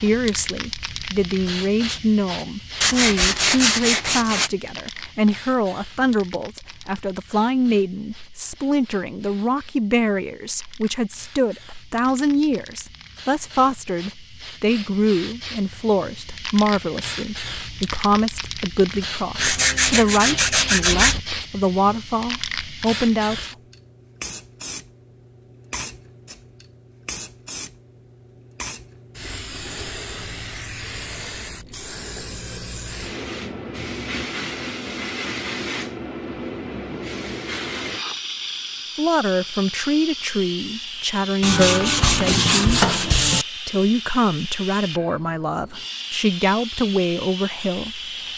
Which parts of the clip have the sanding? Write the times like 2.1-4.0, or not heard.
2.8-4.5, 19.4-21.2, 41.4-43.5.